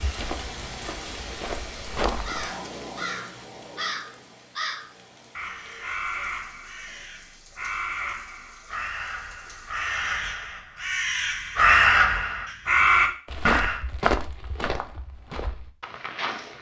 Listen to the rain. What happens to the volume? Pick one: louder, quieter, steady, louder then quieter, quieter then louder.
quieter.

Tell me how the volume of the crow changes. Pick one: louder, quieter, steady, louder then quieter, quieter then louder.
louder.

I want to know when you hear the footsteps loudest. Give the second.
14 s.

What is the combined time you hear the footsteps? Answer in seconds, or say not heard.
6 s.